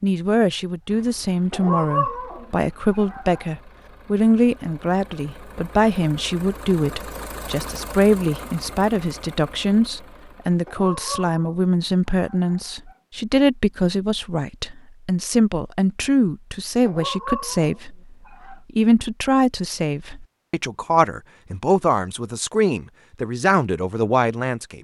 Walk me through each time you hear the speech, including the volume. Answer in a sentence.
You can hear the speech from 0.0 to 24.8 s, at a steady volume.